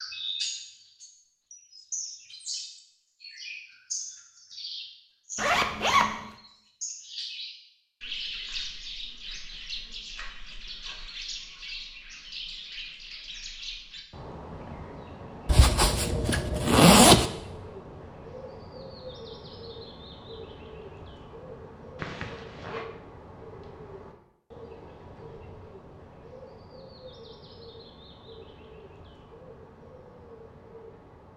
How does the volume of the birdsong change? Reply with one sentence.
The volume of the birdsong goes down.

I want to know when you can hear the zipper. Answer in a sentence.
You can hear the zipper from 5.3 to 6.3 s, from 15.4 to 17.3 s and from 21.9 to 22.9 s.